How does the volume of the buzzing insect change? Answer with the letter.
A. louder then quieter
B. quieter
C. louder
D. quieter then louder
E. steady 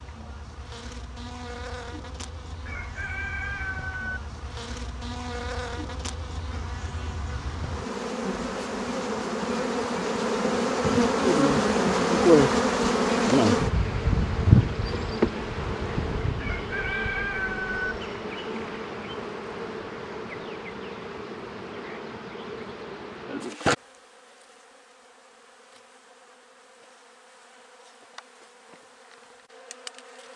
A.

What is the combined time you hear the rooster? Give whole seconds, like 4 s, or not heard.
3 s.